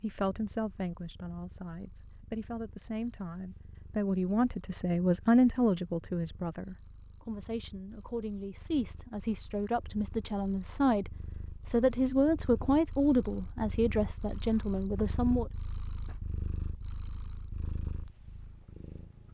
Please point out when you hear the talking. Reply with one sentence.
You can hear the talking from 0.0 to 15.5 s.